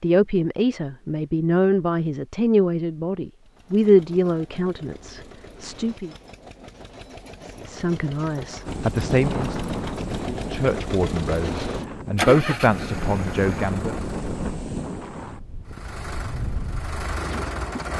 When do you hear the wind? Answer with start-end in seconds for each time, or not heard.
8.7-17.9.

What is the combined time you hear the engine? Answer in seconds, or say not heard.
13 s.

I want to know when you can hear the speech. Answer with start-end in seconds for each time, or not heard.
0.0-6.1, 7.5-13.9.